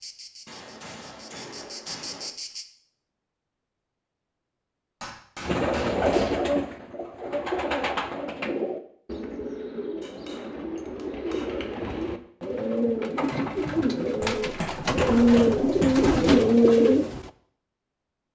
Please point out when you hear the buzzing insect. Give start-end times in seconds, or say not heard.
0.0-2.6.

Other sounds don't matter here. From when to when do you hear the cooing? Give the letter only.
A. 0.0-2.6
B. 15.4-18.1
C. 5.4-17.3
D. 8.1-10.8
C.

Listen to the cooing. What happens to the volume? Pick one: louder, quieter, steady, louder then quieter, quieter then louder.
quieter then louder.